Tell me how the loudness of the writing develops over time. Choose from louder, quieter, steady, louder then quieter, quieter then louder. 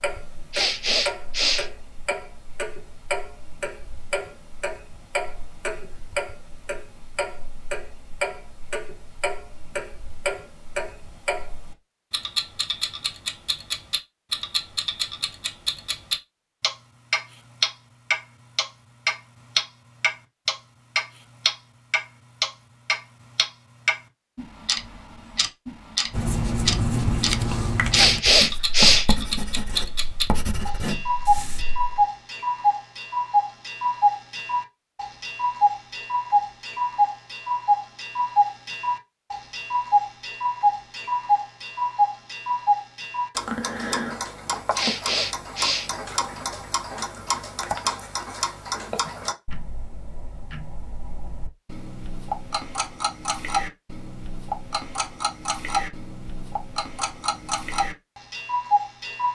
quieter.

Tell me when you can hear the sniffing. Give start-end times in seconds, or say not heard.
0.5-2.1, 27.9-29.1, 44.8-46.4.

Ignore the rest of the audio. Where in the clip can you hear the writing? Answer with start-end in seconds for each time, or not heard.
26.1-32.0.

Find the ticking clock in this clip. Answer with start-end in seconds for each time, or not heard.
0.0-59.2.